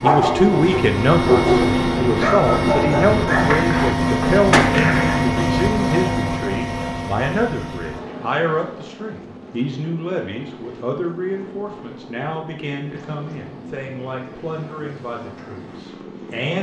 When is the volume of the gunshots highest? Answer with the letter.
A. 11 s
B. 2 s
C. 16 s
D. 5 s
D.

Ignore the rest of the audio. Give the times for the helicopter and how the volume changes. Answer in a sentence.
The helicopter can be heard from 0.0 to 16.5 s, getting quieter.